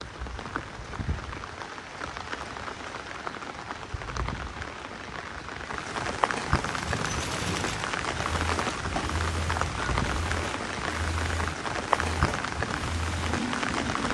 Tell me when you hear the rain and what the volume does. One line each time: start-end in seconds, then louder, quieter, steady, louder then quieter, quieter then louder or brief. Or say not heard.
0.0-14.1 louder.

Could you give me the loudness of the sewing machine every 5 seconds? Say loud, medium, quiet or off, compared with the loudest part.
off, loud, loud.